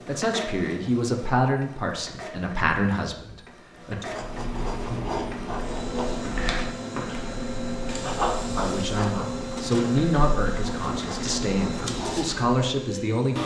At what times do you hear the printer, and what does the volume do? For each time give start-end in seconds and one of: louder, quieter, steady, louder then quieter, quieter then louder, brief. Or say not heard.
0.0-13.4 louder.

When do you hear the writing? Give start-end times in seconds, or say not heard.
4.1-12.5.